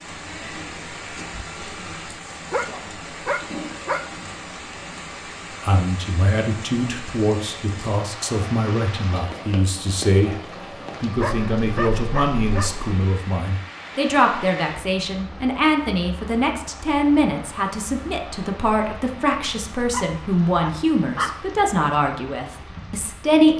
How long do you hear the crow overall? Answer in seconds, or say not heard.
not heard.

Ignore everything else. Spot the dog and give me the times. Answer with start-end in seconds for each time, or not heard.
2.3-4.0, 11.2-12.8, 19.9-21.4.